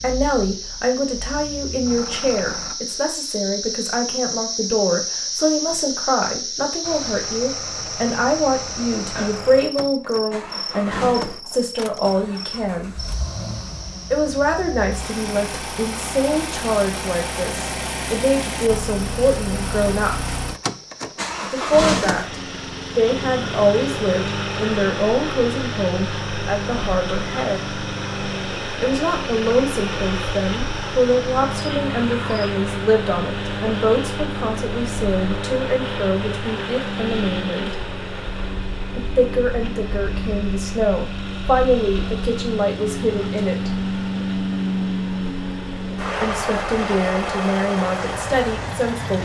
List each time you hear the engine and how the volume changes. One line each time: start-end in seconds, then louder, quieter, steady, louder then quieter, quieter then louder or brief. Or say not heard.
0.0-2.8 brief
6.8-49.2 louder.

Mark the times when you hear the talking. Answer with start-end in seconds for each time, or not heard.
0.0-12.9, 14.1-20.4, 21.5-27.6, 28.8-37.8, 39.0-43.7, 46.2-49.2.